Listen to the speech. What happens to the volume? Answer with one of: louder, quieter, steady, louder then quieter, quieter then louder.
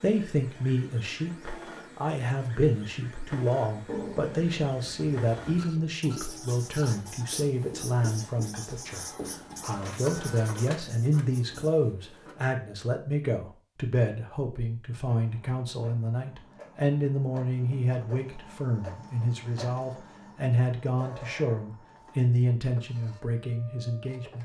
steady.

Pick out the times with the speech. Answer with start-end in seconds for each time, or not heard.
0.0-24.4.